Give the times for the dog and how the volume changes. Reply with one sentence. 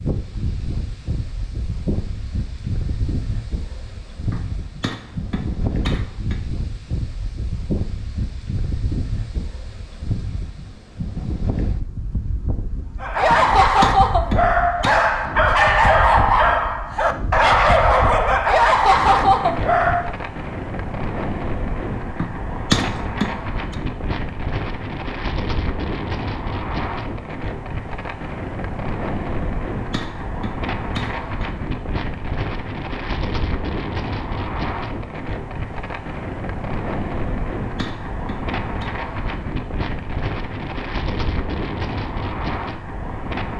The dog can be heard from 13.0 to 20.1 s, at a steady volume.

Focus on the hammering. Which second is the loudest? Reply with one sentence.
The loudest moment of the hammering is at 23 seconds.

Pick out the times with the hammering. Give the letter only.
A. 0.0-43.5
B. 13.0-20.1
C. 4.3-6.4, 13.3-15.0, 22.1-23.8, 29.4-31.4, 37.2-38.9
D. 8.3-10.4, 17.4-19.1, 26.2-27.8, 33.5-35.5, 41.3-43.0
C.